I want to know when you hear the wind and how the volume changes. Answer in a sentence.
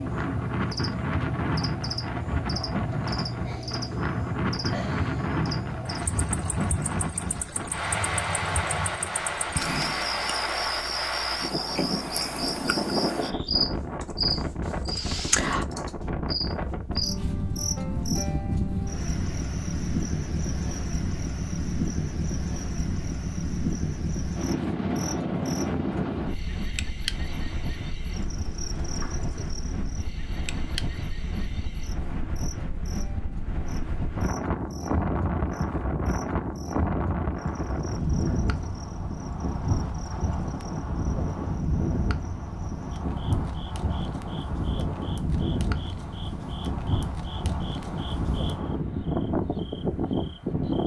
The wind can be heard from 0.0 to 50.8 s, at a steady volume.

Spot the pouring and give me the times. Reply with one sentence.
The pouring can't be heard in this clip.